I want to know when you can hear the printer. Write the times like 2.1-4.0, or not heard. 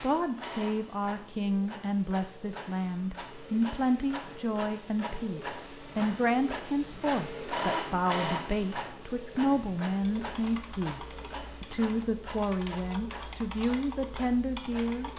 0.0-15.1.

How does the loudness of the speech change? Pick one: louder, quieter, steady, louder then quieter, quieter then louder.
steady.